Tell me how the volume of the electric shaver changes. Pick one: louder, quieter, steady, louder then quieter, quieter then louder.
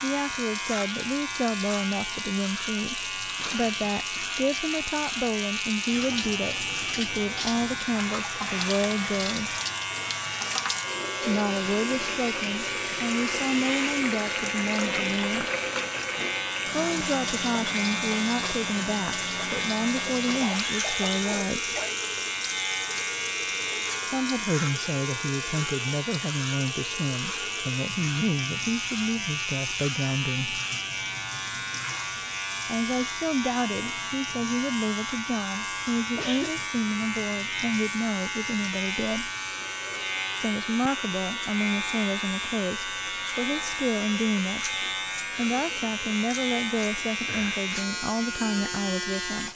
steady.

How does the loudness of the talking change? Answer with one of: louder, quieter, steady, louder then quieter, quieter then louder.
steady.